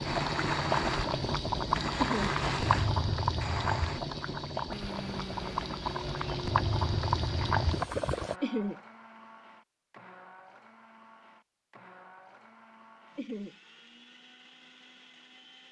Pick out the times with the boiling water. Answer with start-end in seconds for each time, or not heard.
0.0-8.3.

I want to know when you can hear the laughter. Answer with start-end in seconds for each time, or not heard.
1.9-2.4, 8.4-8.8, 13.2-13.6.